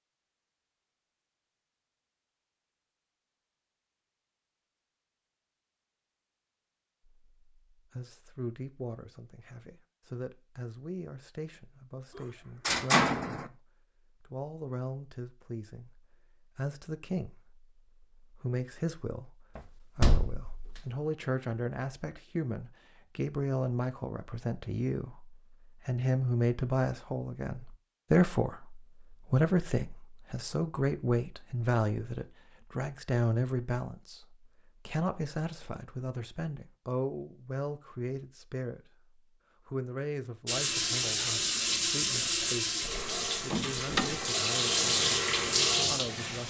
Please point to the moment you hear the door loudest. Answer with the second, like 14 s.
13 s.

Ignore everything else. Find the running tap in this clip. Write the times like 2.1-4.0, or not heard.
40.5-46.4.